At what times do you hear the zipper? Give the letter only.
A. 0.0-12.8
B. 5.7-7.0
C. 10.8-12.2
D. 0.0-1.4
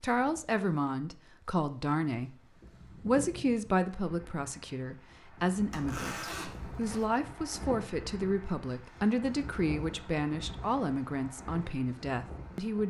B.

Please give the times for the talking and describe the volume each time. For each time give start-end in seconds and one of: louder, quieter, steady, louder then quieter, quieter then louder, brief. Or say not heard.
0.0-12.8 steady.